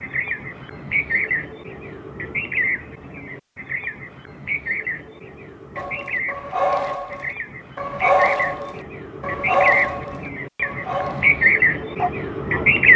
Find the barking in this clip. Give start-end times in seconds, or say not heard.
5.8-12.7.